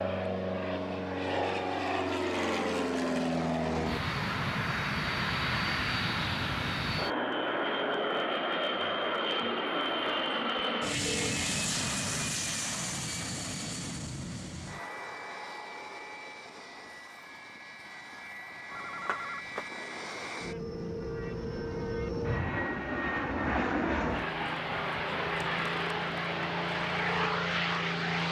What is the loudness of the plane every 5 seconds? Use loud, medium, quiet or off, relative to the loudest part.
loud, loud, loud, quiet, loud, loud.